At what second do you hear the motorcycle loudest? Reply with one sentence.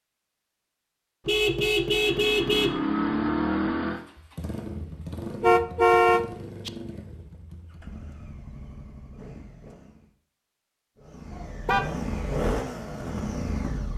The loudest moment of the motorcycle is at 3 seconds.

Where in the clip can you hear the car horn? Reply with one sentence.
The car horn can be heard from 1.2 to 2.8 s, from 5.4 to 6.7 s and from 11.3 to 11.8 s.